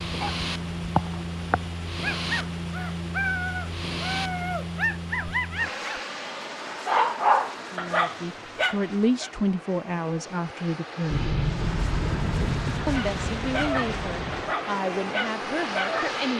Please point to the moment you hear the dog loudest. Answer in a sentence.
The loudest moment of the dog is at 7 seconds.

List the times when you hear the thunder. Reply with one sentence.
The thunder can be heard from 11.1 to 14.6 s.